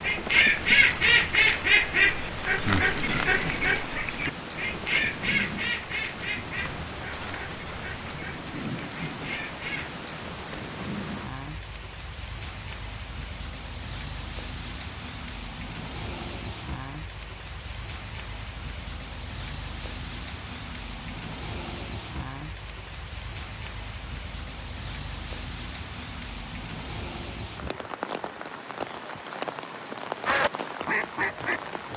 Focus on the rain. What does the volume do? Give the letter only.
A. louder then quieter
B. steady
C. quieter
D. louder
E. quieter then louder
B.